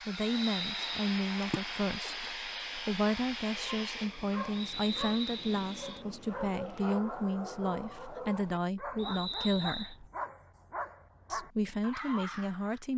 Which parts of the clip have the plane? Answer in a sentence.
You can hear the plane from 0.0 to 7.0 s.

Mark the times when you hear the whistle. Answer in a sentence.
The whistle can be heard from 0.1 to 0.9 s, from 4.5 to 5.8 s and from 8.9 to 9.9 s.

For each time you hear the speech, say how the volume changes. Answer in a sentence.
The speech can be heard from 0.1 to 10.1 s, at a steady volume; and briefly from 11.3 to 12.9 s.